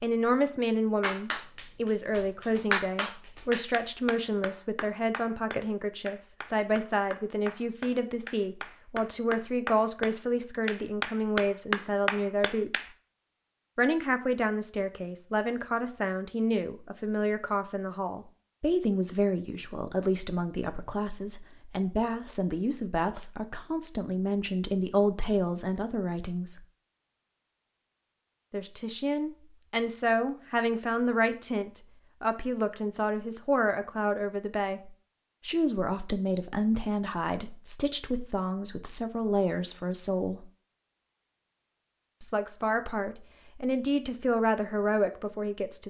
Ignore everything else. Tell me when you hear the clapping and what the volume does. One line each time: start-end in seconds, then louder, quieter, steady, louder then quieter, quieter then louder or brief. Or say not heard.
1.0-12.9 quieter then louder.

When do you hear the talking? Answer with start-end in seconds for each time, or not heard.
0.0-12.8, 13.8-26.6, 28.5-40.5, 42.2-45.8.